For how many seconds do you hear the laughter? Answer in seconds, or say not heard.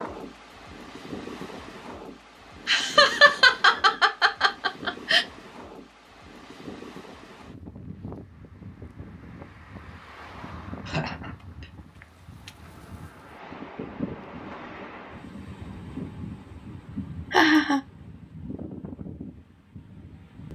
4 s.